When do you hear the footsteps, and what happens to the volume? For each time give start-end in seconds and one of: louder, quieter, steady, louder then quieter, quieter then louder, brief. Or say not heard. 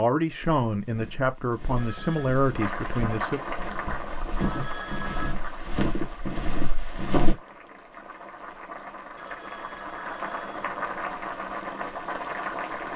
0.4-7.3 louder.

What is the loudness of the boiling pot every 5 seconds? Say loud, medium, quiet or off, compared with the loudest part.
loud, medium, loud.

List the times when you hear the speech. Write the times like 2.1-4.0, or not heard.
0.0-3.4.